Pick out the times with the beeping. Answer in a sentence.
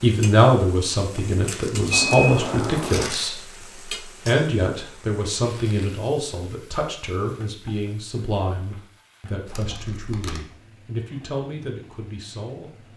The beeping can be heard from 1.9 to 3.1 s.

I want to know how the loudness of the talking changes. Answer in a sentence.
The loudness of the talking goes down.